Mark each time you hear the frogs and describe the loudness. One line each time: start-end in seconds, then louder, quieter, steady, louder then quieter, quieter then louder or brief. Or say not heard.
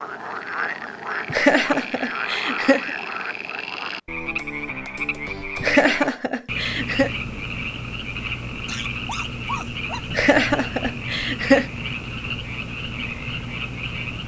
0.0-14.2 steady.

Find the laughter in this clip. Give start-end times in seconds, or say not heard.
1.3-2.9, 5.6-7.1, 10.1-11.7.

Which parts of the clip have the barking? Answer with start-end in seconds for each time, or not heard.
8.7-10.1.